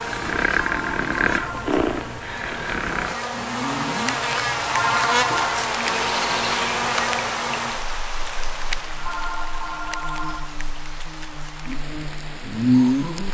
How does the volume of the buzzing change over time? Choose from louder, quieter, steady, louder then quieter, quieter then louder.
louder then quieter.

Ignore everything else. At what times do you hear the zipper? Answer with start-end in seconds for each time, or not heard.
not heard.